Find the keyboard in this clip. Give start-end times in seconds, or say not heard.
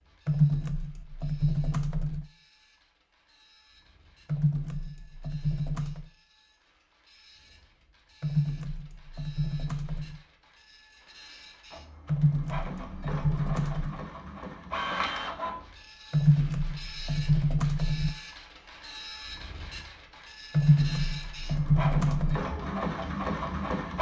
0.2-2.2, 4.2-6.1, 8.2-10.2, 12.1-14.1, 16.1-18.1, 20.6-22.4.